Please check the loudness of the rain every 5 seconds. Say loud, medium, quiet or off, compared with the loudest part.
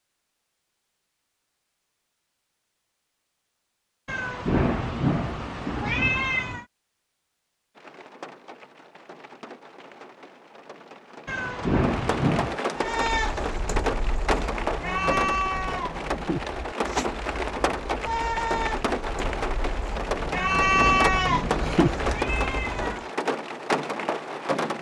off, quiet, loud, loud, loud.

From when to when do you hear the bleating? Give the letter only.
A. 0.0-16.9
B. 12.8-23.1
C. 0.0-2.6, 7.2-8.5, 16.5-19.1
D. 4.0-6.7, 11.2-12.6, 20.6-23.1
B.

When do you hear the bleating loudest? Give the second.
21 s.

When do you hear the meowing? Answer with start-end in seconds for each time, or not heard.
4.0-6.7, 11.2-12.6, 20.6-23.1.